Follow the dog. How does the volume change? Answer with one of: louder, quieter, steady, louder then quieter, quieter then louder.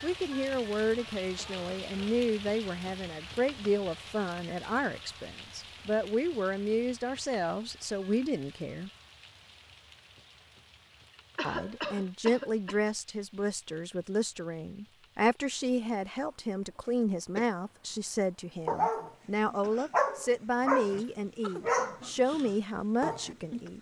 louder then quieter.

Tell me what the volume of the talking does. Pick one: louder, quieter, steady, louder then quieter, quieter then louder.
steady.